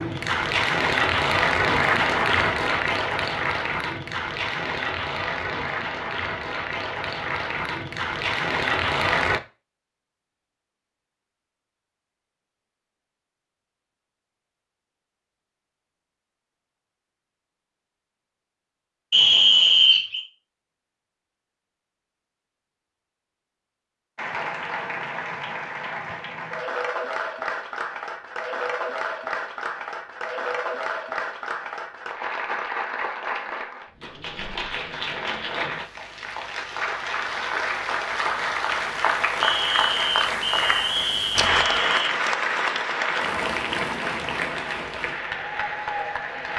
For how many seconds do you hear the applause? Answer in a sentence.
The applause can be heard for 32 seconds in total.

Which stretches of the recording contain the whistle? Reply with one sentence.
You can hear the whistle from 19.1 to 20.2 s and from 39.4 to 42.1 s.